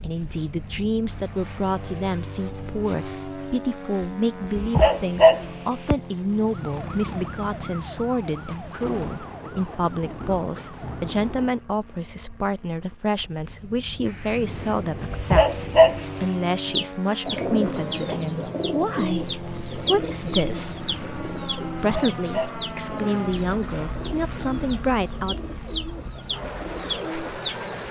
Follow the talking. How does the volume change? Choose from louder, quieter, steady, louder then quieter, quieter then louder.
steady.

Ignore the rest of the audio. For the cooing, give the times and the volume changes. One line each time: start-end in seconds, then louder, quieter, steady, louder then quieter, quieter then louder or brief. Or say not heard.
16.6-27.8 quieter then louder.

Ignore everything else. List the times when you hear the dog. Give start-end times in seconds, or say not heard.
4.5-6.0, 15.1-16.1, 21.8-22.6.